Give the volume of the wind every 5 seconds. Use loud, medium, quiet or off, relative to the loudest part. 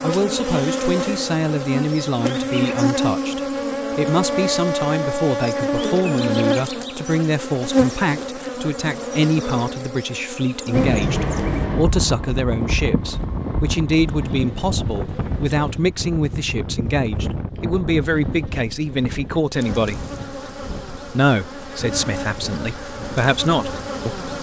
off, off, loud, medium, quiet.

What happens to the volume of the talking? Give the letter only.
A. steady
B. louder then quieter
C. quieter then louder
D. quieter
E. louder
A.